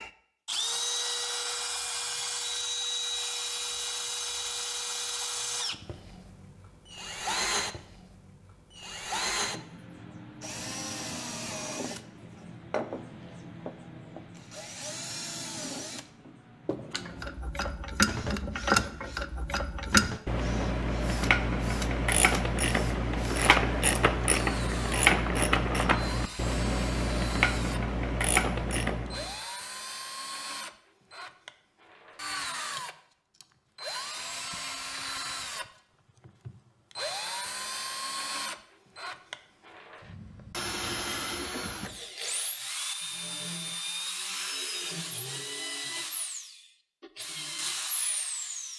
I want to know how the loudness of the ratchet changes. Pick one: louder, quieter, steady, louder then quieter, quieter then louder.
steady.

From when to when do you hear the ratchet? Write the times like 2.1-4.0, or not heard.
17.1-29.4.